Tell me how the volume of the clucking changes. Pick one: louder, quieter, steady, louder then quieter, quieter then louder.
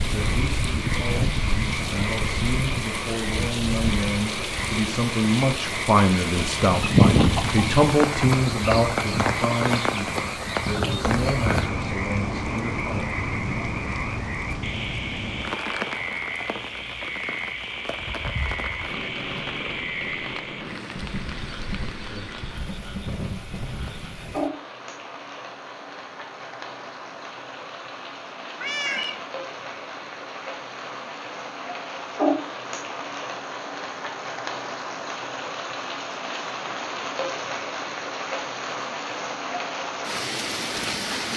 quieter.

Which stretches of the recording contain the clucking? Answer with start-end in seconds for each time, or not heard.
6.6-11.7.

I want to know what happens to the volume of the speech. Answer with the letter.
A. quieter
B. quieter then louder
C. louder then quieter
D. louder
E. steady
C.